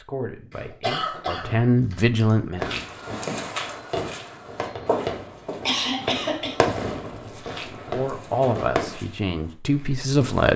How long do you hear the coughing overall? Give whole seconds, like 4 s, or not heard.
3 s.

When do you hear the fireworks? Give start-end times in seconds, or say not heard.
2.6-8.9.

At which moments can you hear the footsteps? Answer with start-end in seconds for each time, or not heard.
2.6-10.5.